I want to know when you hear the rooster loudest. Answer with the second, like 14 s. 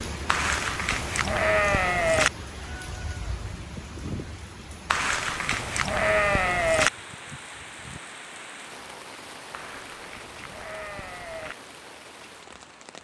4 s.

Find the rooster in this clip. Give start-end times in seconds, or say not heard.
2.6-4.5.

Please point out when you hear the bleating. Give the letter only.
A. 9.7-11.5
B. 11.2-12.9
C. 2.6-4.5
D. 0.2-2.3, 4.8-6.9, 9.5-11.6
D.